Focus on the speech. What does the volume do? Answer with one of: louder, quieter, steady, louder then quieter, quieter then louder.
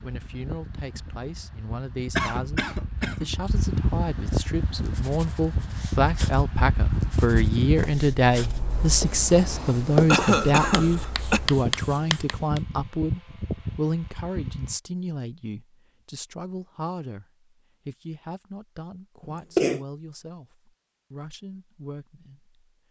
louder then quieter.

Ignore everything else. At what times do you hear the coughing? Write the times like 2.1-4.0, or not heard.
2.1-3.3, 10.1-11.4, 19.3-19.8.